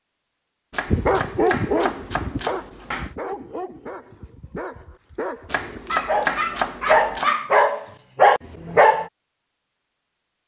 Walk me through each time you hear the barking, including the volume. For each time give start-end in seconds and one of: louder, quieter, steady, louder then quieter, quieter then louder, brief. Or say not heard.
0.8-9.1 quieter then louder.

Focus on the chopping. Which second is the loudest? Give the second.
6 s.